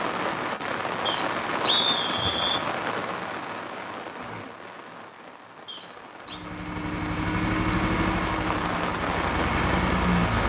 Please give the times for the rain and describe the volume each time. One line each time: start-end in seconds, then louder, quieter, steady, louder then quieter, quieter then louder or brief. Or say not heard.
0.0-10.4 quieter then louder.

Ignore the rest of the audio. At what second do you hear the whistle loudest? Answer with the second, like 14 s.
2 s.